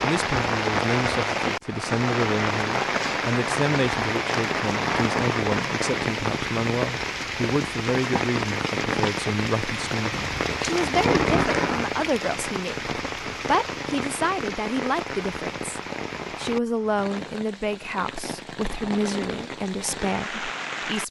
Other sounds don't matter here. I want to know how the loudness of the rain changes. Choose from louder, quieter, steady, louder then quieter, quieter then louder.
quieter.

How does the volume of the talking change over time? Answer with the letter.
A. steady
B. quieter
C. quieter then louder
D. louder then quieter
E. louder
A.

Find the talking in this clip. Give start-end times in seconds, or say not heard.
0.0-21.0.